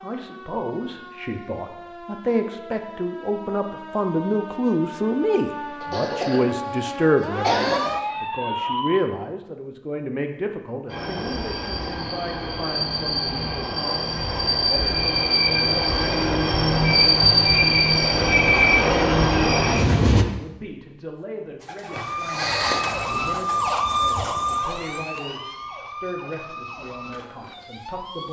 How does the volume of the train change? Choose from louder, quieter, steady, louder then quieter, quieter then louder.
louder.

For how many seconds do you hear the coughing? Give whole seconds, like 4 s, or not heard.
3 s.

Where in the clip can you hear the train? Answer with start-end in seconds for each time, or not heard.
10.8-20.2.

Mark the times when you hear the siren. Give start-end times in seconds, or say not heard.
0.0-9.1, 21.9-28.2.